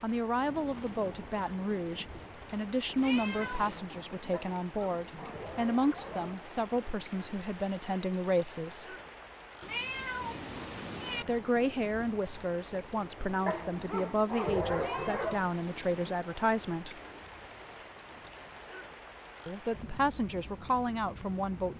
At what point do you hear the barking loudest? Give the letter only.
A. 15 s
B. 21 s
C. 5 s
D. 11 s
A.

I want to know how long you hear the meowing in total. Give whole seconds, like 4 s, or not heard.
4 s.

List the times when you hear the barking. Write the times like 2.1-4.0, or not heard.
4.3-6.3, 13.4-15.4.